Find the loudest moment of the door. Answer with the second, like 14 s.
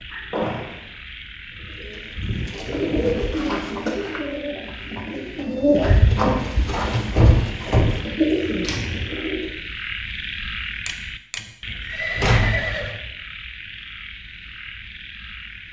12 s.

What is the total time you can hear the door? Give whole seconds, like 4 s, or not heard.
3 s.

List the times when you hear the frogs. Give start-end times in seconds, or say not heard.
0.0-15.6.